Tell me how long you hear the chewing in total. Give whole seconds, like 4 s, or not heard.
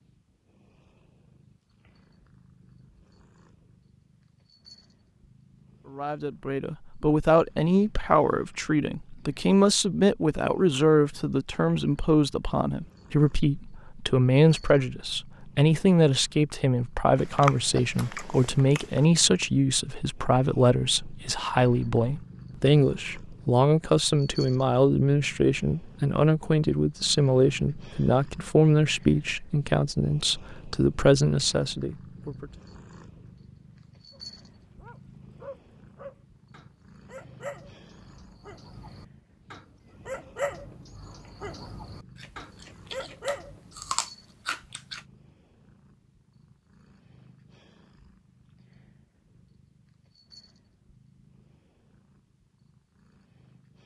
5 s.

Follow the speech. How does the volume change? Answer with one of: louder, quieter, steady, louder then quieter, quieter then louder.
steady.